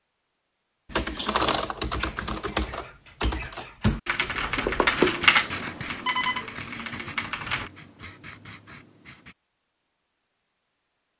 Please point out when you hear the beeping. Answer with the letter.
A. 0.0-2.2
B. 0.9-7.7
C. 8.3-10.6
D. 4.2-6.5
D.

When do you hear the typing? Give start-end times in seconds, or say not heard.
0.9-7.7.